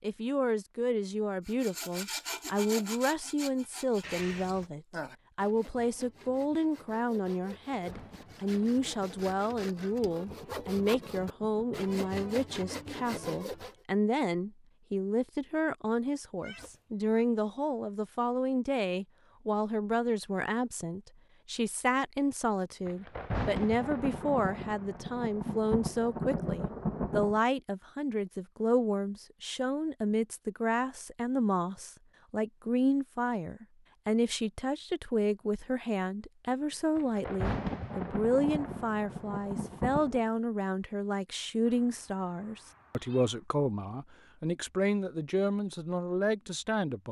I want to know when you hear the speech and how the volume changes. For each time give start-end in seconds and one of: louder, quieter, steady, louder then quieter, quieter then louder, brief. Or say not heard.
0.0-47.0 steady.